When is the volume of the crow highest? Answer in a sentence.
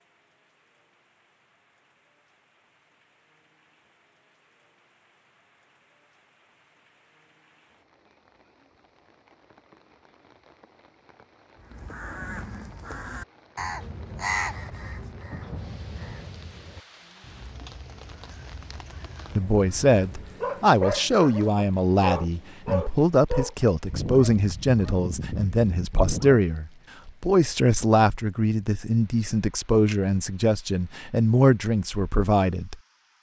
The loudest moment of the crow is at 14 seconds.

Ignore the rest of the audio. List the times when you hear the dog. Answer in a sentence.
You can hear the dog from 20.4 to 26.4 s.